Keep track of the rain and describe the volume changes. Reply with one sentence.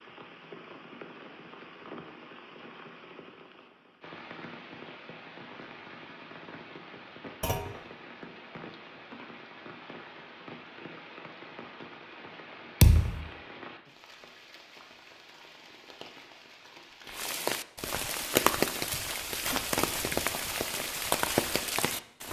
The loudness of the rain goes up.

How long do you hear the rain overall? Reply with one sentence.
You can hear the rain for 22 seconds altogether.